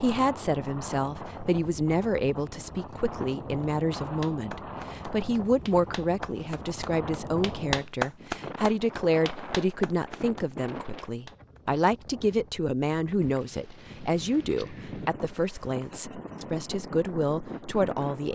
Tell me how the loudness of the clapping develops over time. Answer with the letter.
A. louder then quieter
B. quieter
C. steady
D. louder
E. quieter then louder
A.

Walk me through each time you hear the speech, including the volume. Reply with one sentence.
The speech can be heard from 0.0 to 18.3 s, at a steady volume.